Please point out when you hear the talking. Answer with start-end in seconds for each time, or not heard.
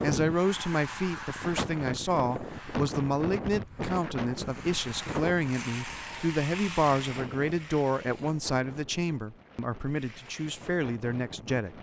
0.0-11.7.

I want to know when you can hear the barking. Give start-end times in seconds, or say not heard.
not heard.